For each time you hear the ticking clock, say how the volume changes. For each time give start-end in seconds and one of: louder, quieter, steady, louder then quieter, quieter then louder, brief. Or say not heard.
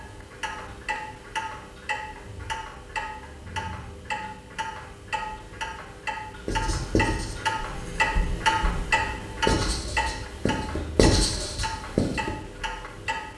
0.0-13.3 louder then quieter.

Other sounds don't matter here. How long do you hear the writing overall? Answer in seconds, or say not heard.
6 s.